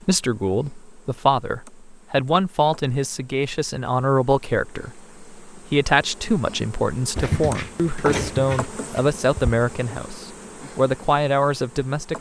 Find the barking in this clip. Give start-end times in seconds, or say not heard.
7.2-9.6.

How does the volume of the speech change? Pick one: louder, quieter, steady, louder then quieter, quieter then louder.
steady.